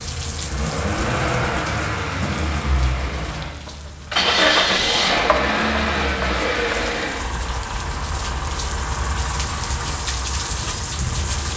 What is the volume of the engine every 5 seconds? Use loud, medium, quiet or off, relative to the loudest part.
loud, loud, medium.